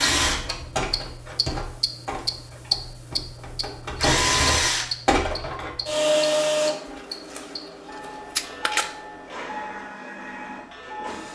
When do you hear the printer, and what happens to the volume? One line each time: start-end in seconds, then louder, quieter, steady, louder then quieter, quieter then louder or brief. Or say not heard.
0.0-11.2 louder then quieter.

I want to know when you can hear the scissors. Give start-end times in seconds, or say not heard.
8.3-8.8.